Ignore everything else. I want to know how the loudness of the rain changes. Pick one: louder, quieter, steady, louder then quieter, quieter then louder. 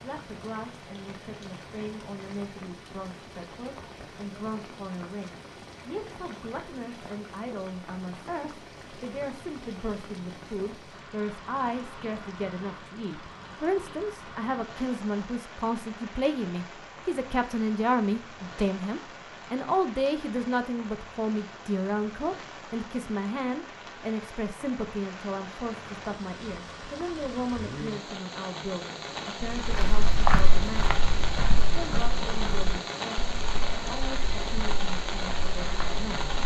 louder.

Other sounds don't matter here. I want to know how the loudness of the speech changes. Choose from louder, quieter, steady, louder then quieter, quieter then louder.
louder then quieter.